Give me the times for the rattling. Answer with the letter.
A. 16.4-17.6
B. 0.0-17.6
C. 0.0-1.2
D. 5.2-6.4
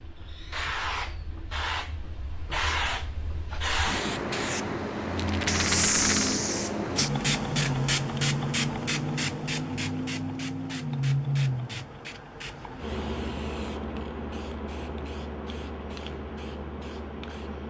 D.